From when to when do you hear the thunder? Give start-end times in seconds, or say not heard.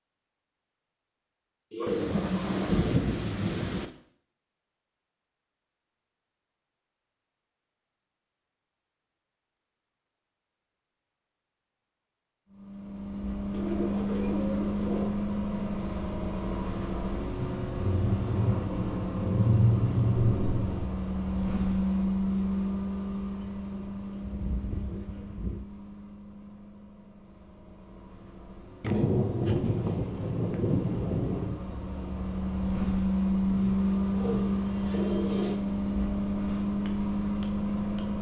1.9-3.9, 17.4-20.9, 28.8-31.6.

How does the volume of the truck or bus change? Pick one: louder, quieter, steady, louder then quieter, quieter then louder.
quieter then louder.